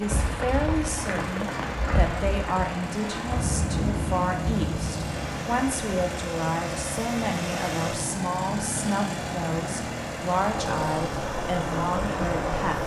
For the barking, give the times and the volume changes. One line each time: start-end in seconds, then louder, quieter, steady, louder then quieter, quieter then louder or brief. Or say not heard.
not heard.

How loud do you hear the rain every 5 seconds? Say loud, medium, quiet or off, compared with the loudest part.
loud, medium, loud.